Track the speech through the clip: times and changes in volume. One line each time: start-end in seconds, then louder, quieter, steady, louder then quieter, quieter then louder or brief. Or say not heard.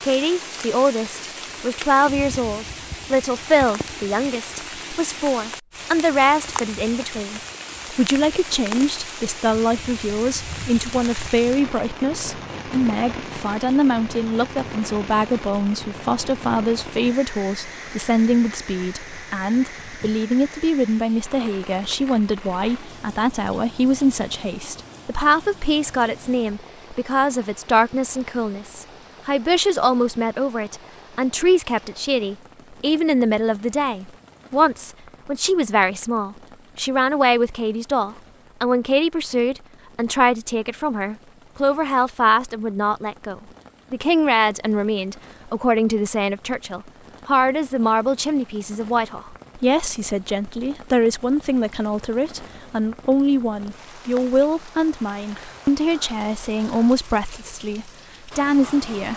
0.0-59.1 steady.